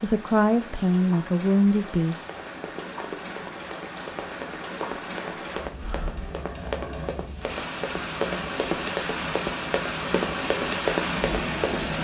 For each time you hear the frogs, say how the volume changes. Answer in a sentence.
The frogs can't be heard in this clip.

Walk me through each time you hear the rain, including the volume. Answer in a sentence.
The rain can be heard from 0.0 to 11.9 s, getting louder.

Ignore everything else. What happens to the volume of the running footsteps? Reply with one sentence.
The loudness of the running footsteps goes up.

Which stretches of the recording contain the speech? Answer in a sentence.
You can hear the speech from 0.0 to 2.2 s.